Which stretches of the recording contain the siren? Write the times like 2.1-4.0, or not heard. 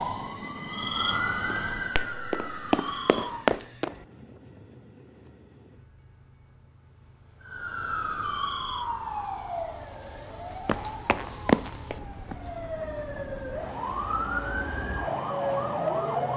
0.0-3.5, 7.5-16.3.